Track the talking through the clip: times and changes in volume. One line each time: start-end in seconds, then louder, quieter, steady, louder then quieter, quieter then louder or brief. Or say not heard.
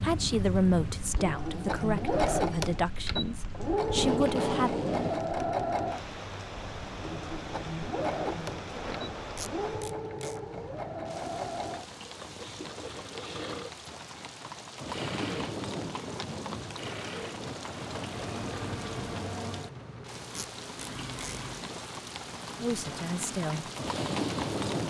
0.0-4.8 quieter then louder
22.6-23.6 brief.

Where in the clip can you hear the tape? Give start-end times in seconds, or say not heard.
3.8-5.3, 9.3-10.4, 20.4-21.4.